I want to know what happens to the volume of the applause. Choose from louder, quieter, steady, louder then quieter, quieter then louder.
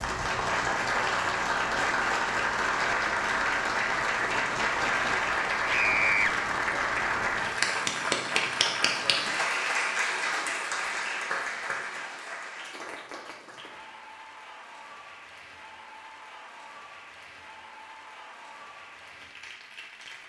quieter.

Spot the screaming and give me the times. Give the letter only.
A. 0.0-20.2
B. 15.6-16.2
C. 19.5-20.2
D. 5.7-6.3
D.